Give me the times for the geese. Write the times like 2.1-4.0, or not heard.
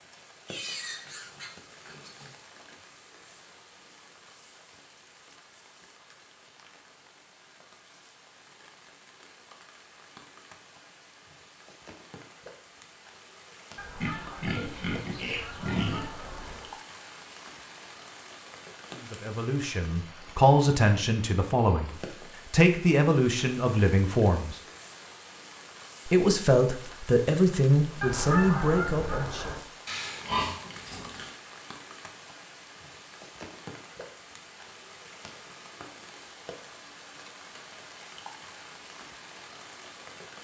13.8-16.8, 28.0-29.6.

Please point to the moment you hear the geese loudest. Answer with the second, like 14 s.
28 s.